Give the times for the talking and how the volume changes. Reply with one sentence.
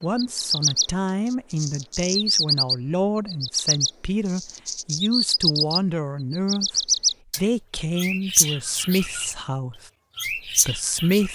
The talking can be heard from 0.0 to 11.2 s, at a steady volume.